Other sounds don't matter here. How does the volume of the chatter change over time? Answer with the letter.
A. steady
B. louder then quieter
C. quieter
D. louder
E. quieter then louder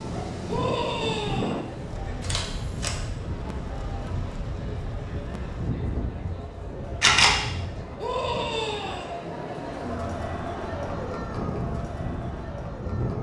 D.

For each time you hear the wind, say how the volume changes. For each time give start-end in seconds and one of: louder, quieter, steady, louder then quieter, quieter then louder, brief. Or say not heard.
0.0-13.1 quieter then louder.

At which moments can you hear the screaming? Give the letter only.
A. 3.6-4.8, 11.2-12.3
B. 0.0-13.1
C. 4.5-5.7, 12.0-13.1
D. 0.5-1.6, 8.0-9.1
D.